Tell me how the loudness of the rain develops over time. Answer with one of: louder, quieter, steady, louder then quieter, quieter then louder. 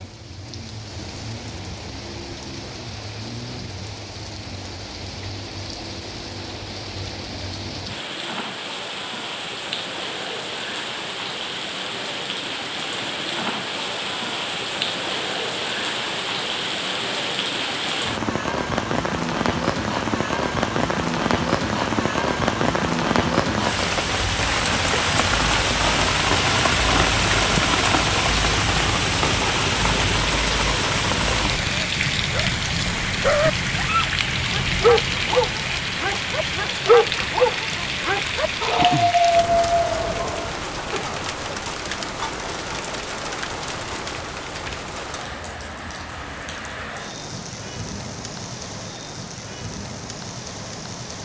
louder then quieter.